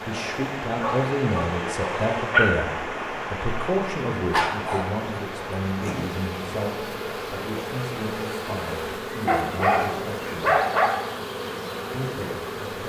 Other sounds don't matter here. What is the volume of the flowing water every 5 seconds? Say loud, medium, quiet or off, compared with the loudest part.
loud, medium, off.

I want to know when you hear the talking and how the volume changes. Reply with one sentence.
You can hear the talking from 0.1 to 10.5 s, getting quieter; and briefly from 11.9 to 12.8 s.